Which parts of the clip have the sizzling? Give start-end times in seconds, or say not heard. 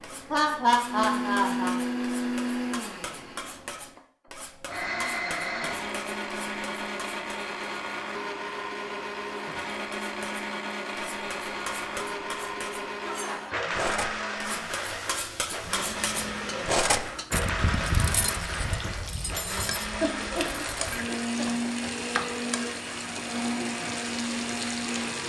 14.3-25.2.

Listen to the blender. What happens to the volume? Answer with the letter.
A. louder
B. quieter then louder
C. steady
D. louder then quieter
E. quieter
C.